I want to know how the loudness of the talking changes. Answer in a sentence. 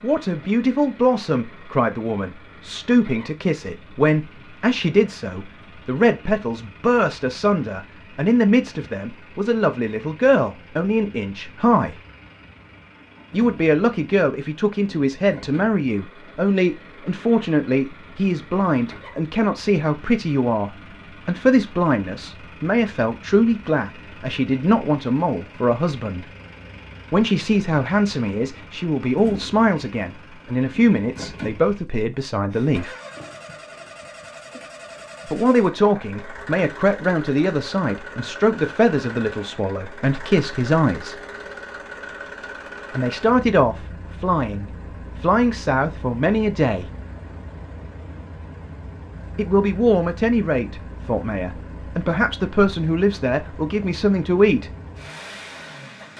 The loudness of the talking stays about the same.